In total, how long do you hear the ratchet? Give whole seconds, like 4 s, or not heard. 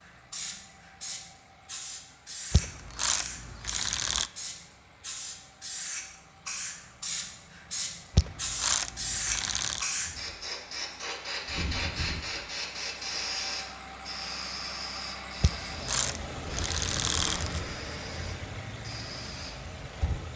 6 s.